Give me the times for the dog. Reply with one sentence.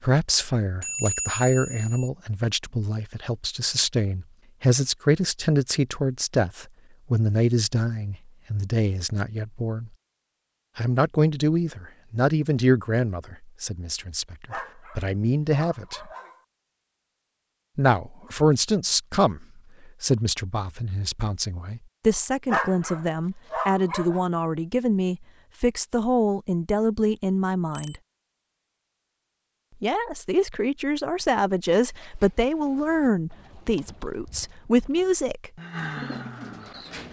You can hear the dog from 14.5 to 16.4 s and from 22.4 to 24.2 s.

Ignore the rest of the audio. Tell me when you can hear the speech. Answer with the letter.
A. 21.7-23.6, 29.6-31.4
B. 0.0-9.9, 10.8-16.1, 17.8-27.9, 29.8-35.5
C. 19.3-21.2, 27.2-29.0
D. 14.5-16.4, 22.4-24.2
B.